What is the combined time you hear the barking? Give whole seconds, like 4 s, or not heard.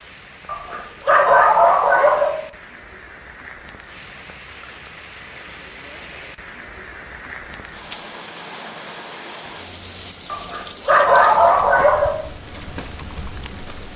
4 s.